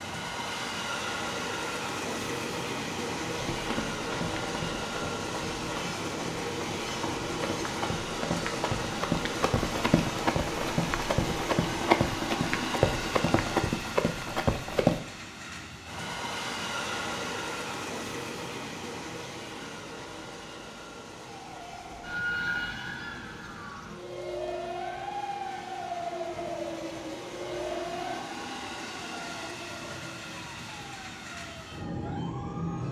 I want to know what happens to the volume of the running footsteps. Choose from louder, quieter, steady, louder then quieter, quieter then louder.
louder.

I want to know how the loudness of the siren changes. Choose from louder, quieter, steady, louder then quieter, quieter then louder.
quieter.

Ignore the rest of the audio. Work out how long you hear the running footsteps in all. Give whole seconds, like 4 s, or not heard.
12 s.